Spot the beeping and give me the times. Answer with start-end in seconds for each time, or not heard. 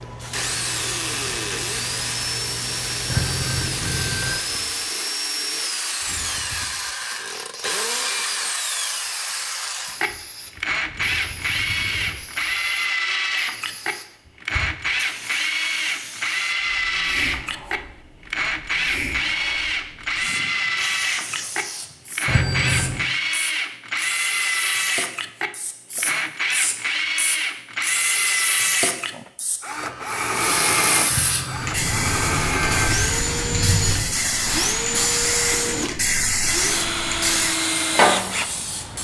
3.0-4.4, 22.2-23.1, 31.1-33.1.